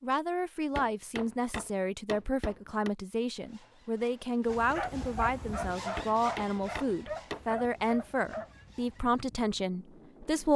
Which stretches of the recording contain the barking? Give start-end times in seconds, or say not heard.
4.5-8.7.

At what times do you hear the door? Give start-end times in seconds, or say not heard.
not heard.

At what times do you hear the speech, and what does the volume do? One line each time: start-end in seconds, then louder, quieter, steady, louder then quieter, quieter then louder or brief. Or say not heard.
0.0-10.5 steady.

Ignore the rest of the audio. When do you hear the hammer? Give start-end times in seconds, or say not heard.
0.8-2.9, 6.0-7.5.